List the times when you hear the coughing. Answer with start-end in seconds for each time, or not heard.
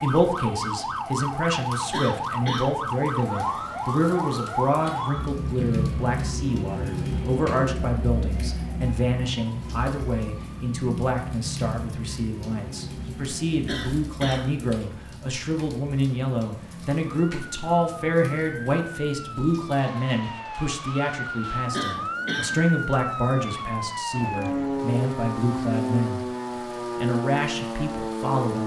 1.9-2.6, 13.7-14.6, 21.7-22.6.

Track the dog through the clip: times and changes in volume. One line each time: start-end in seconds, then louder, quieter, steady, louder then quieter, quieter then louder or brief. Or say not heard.
not heard.